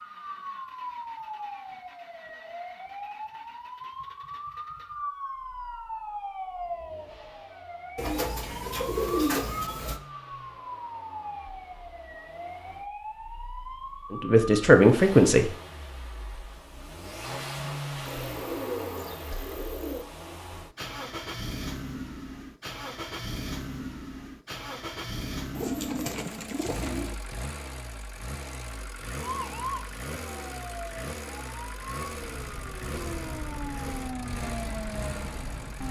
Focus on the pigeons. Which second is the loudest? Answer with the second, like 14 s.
9 s.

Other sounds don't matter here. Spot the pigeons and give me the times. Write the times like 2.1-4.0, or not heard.
8.0-10.0, 18.1-20.1, 25.6-27.1.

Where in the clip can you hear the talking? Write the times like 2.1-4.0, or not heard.
14.1-15.5.